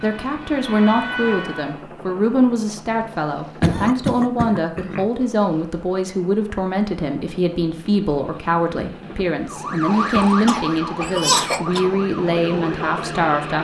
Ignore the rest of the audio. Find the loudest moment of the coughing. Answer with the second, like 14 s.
11 s.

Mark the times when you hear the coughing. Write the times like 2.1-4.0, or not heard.
3.6-5.1, 10.1-11.8.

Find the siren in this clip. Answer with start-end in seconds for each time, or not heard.
0.0-1.8, 9.4-13.3.